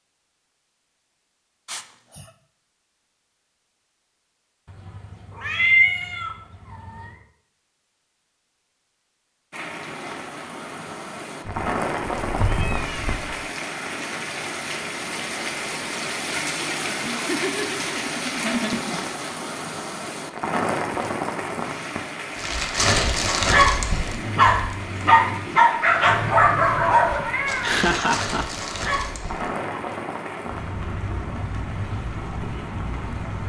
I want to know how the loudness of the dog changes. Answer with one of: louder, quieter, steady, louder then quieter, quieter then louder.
quieter.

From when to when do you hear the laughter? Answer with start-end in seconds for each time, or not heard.
1.6-2.3, 17.1-19.2, 27.1-28.4.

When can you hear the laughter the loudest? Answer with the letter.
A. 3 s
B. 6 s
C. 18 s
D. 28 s
D.